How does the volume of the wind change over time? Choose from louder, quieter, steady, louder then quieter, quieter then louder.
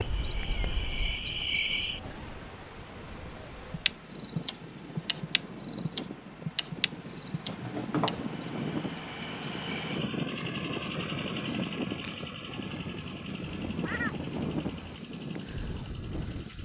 louder.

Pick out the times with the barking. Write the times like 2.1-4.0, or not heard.
not heard.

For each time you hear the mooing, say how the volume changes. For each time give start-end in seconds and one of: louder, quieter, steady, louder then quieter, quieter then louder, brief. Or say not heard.
not heard.